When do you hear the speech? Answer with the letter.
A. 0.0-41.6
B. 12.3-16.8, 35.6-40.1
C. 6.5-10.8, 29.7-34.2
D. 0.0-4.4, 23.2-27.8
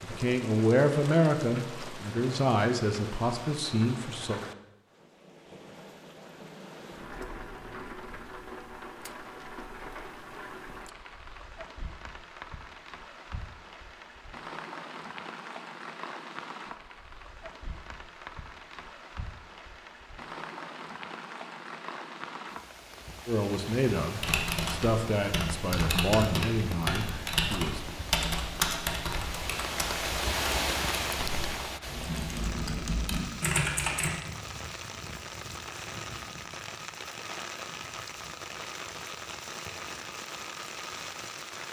D.